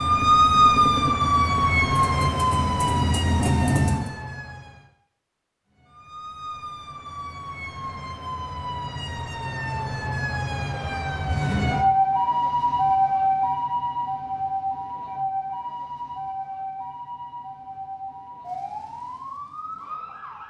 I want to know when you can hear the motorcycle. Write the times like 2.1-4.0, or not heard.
0.0-4.1.